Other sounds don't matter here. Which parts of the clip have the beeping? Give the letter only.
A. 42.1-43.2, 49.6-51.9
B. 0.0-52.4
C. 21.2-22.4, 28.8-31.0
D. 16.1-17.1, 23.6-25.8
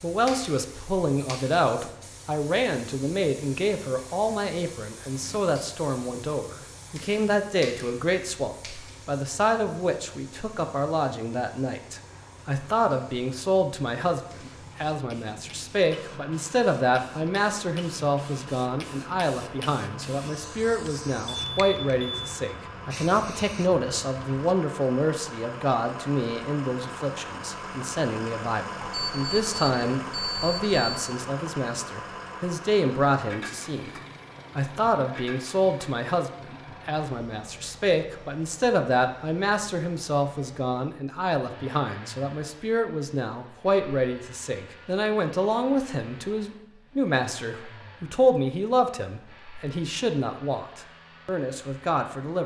C.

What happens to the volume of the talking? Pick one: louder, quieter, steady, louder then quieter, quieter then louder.
steady.